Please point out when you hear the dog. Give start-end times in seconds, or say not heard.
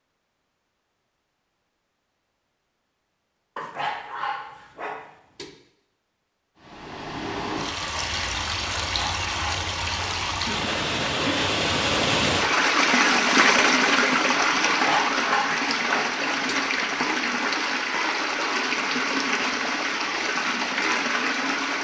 3.5-5.5, 8.8-10.2, 14.7-16.6.